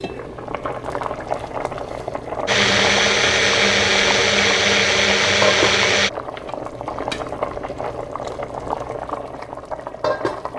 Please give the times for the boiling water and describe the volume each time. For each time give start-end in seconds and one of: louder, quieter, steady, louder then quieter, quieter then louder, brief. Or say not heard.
0.0-10.5 steady.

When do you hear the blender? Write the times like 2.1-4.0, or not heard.
2.5-6.1.